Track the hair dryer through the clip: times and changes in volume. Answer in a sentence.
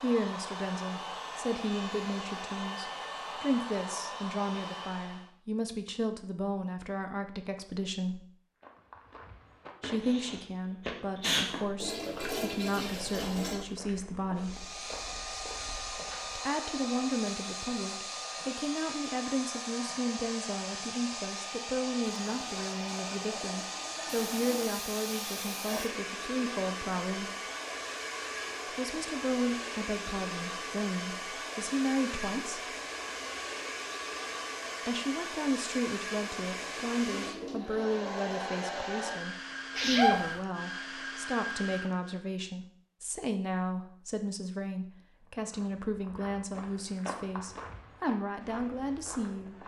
The hair dryer can be heard from 0.0 to 5.3 s, at a steady volume; and from 14.3 to 42.2 s, at a steady volume.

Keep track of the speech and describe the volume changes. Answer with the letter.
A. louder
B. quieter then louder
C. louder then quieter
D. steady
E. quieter
D.